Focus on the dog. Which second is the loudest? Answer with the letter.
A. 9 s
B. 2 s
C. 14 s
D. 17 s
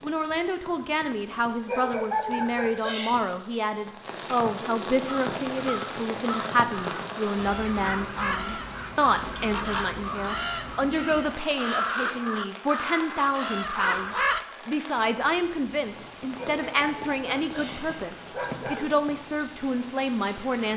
B.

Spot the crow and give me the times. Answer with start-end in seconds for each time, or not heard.
5.0-14.4.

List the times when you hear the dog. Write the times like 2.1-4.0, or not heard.
1.6-3.2, 16.4-18.9.